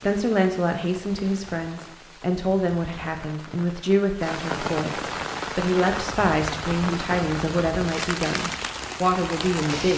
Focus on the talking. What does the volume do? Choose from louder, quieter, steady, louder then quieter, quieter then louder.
steady.